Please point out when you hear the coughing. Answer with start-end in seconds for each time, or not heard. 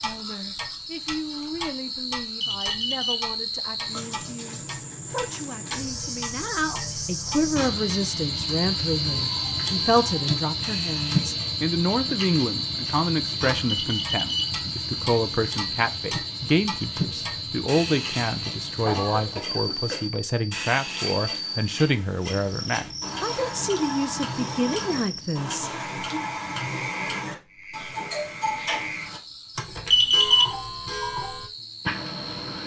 18.9-20.2.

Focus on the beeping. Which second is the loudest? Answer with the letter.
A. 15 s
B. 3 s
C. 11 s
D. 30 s
D.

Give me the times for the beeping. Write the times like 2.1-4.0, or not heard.
2.4-3.7, 13.7-15.0, 29.9-30.6.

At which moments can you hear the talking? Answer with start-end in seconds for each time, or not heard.
0.0-25.7.